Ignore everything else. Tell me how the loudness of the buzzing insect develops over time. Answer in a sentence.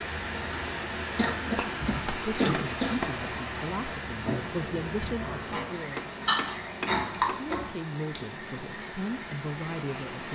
The volume of the buzzing insect goes up, then down.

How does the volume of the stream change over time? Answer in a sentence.
The volume of the stream goes down.